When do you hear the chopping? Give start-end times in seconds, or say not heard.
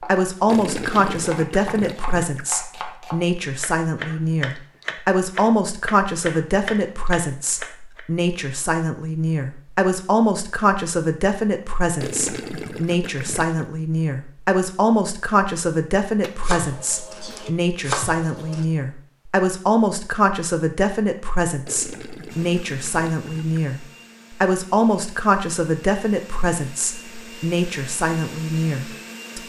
0.0-8.0, 16.2-18.6.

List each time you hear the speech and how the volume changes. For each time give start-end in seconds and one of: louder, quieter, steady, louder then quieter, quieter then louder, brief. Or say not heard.
0.0-29.4 steady.